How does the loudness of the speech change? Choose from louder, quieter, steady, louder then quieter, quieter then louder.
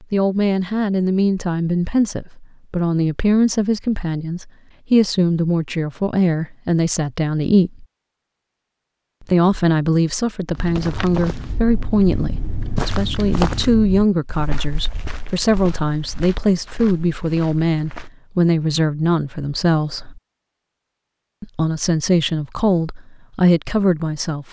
steady.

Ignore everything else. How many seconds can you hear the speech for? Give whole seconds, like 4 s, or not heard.
22 s.